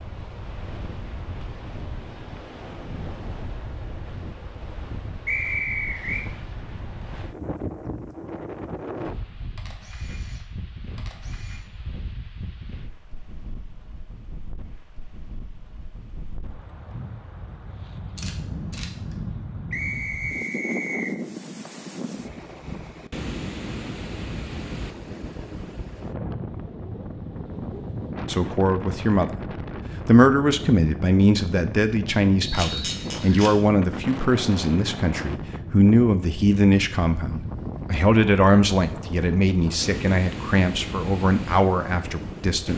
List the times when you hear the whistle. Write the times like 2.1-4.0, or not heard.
5.2-6.2, 19.7-21.1, 32.4-33.5.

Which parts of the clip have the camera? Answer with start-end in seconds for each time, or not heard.
9.6-11.7, 18.1-19.2, 32.5-33.5.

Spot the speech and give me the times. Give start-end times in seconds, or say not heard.
28.2-42.7.